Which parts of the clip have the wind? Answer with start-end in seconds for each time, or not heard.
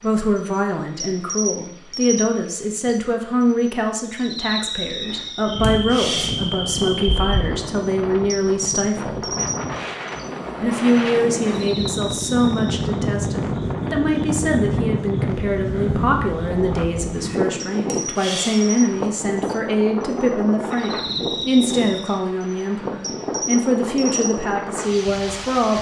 5.5-25.7.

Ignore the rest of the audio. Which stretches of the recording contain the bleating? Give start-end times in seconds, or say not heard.
not heard.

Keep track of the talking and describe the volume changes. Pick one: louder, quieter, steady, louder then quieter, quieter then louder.
steady.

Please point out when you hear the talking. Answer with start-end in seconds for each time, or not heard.
0.0-9.3, 10.6-25.7.